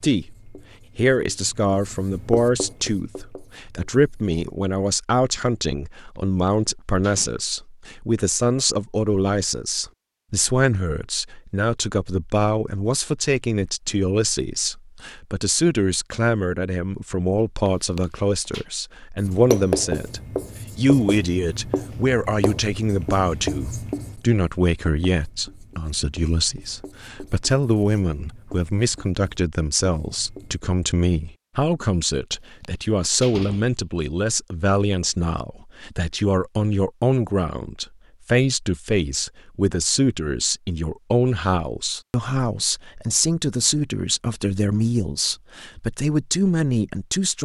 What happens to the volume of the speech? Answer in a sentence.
The loudness of the speech stays about the same.